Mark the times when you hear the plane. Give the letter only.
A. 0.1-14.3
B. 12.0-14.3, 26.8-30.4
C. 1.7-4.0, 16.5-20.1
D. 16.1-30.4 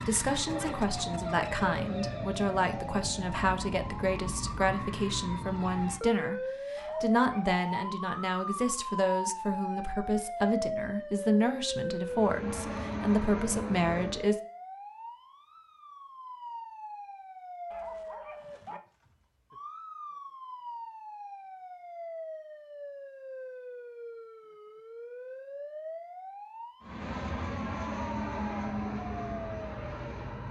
B.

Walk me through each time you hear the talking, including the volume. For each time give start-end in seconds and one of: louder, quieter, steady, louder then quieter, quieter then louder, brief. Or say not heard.
0.1-14.3 steady.